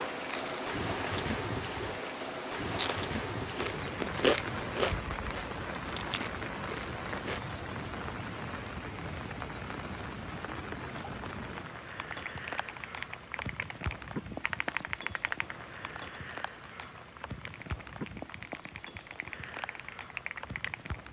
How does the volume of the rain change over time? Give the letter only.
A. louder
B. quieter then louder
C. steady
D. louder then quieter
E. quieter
E.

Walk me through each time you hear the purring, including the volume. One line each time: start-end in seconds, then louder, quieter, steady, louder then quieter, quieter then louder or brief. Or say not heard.
not heard.